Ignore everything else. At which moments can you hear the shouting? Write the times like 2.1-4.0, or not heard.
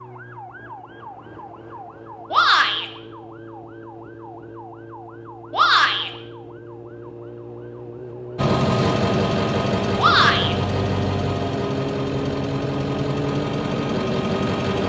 2.3-2.9, 5.5-6.1, 9.9-10.6.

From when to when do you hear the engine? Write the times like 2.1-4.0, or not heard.
8.3-14.8.